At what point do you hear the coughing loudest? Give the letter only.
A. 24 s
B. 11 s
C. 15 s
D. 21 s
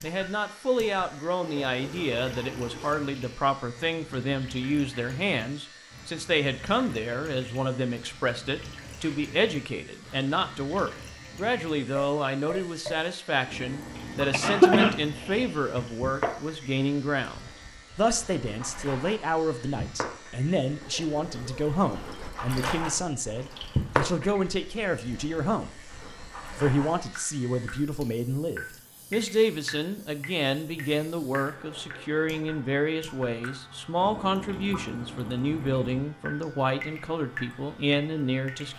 C.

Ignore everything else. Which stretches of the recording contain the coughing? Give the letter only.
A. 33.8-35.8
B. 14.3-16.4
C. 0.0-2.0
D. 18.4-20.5
B.